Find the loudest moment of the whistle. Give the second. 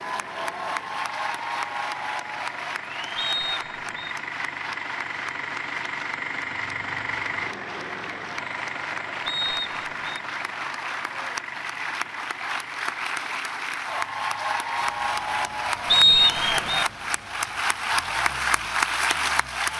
16 s.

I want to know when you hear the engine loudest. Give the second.
7 s.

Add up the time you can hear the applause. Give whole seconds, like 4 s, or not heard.
20 s.